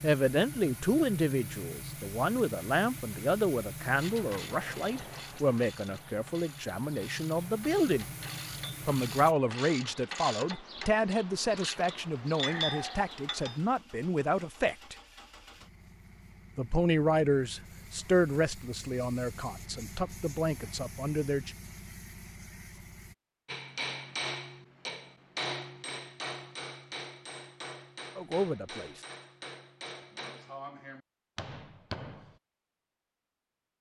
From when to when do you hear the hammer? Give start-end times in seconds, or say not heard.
23.4-32.4.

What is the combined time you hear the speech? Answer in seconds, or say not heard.
20 s.